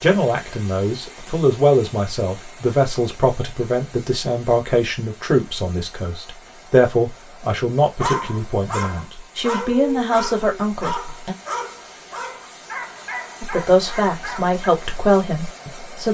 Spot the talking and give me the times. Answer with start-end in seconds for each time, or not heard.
0.0-11.3, 13.4-16.0.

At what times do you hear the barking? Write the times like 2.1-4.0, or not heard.
8.0-14.6.